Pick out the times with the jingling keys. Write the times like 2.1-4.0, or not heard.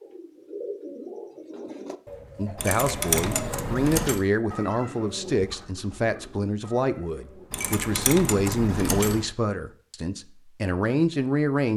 2.5-4.2, 7.5-9.2.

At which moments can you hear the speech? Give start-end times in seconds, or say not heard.
2.4-11.7.